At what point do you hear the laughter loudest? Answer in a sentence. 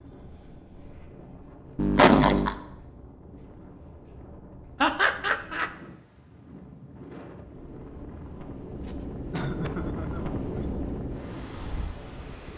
The volume of the laughter peaks at 2 seconds.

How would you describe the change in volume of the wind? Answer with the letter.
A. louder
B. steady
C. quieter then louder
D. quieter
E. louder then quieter
A.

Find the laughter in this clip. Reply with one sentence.
You can hear the laughter from 1.8 to 2.5 s, from 4.8 to 5.7 s and from 8.8 to 10.7 s.